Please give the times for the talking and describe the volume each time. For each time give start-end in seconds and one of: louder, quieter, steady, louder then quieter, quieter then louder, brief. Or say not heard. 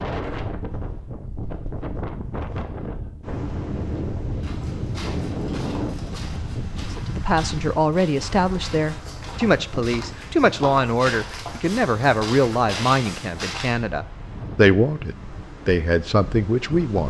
6.8-17.0 steady.